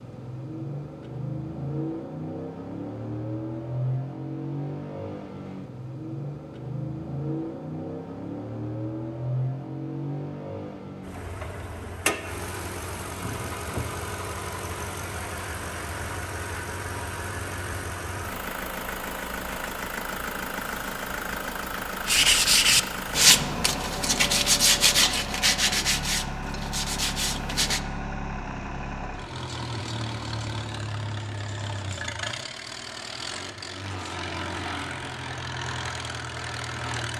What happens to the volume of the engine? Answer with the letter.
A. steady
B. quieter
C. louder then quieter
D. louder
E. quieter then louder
A.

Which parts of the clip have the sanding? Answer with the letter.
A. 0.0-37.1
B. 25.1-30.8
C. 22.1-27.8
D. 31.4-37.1
C.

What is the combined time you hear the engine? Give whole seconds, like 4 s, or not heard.
37 s.